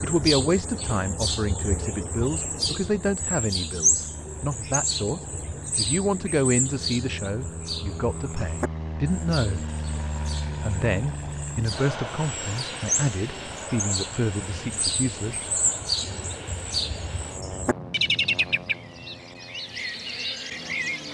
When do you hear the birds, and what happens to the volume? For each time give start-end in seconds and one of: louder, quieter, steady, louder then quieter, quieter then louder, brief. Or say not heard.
0.0-21.0 quieter then louder.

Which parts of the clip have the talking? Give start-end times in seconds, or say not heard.
0.0-9.7, 10.6-15.4.